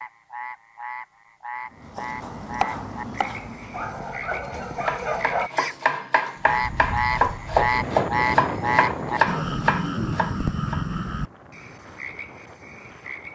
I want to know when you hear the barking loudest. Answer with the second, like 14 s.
5 s.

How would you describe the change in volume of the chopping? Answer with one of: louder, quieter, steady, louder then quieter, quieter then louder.
louder.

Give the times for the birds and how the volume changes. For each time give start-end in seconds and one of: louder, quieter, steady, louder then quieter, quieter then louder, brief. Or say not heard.
not heard.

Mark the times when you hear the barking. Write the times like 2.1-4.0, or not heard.
3.7-5.5.